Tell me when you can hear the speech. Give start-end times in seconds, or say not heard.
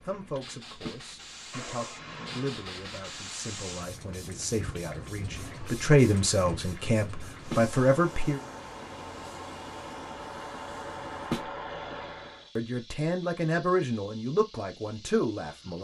0.1-8.4, 12.6-15.7.